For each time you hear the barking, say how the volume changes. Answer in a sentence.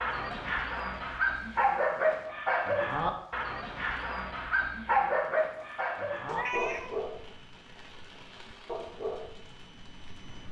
You can hear the barking from 0.0 to 10.4 s, getting quieter.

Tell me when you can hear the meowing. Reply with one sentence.
The meowing can be heard from 6.2 to 7.0 s.